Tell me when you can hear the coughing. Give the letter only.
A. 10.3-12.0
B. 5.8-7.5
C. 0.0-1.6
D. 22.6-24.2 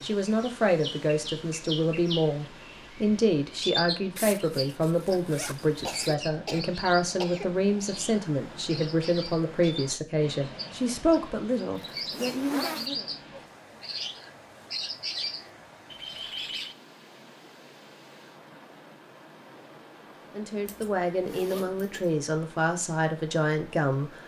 B.